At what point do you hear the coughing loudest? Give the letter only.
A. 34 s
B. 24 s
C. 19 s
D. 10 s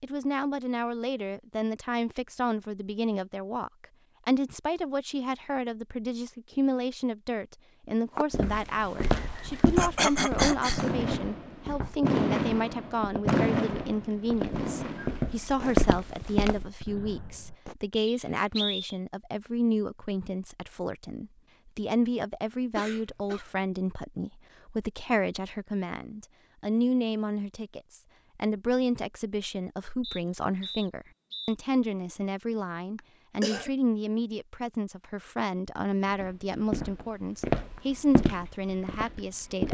D.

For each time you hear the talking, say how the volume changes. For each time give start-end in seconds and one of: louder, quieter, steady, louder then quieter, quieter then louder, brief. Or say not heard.
0.0-39.6 steady.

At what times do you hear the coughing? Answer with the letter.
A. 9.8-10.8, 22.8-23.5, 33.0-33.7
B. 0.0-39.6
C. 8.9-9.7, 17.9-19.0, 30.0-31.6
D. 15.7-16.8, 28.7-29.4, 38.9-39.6
A.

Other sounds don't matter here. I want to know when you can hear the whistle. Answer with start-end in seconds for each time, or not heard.
8.9-9.7, 17.9-19.0, 30.0-31.6.